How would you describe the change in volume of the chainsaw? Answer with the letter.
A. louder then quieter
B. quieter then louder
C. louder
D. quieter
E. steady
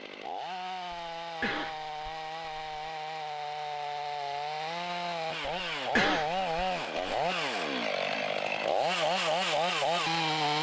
C.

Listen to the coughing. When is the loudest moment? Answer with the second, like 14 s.
6 s.